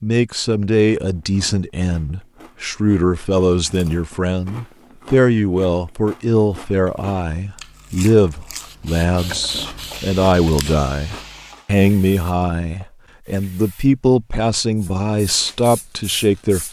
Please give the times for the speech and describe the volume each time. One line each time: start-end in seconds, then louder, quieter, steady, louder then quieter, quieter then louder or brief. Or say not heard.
0.0-16.6 steady.